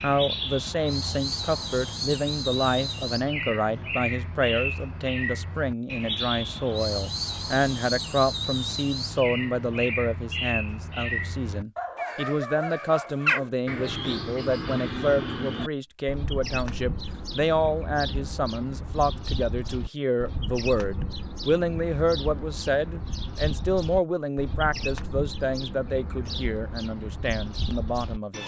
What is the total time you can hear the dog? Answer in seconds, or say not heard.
2 s.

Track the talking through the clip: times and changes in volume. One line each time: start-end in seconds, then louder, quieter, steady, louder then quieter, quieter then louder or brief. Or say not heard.
0.0-28.4 steady.